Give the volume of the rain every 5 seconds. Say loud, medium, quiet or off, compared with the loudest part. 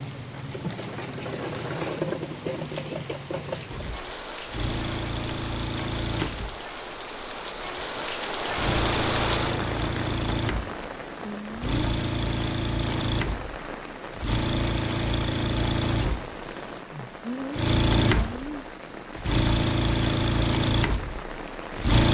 medium, loud, medium, medium, medium.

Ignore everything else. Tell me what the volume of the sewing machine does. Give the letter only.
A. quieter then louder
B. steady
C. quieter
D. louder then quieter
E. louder
E.